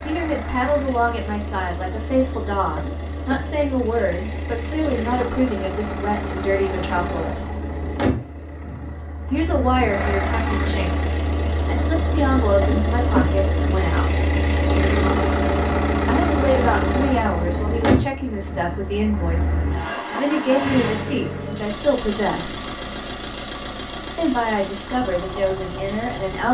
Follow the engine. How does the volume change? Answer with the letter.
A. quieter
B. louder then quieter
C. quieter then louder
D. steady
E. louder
B.